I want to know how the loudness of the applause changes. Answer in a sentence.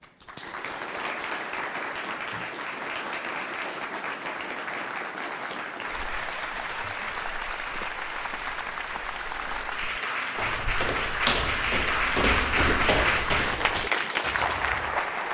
The volume of the applause goes up.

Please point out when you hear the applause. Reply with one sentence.
You can hear the applause from 0.0 to 15.2 s.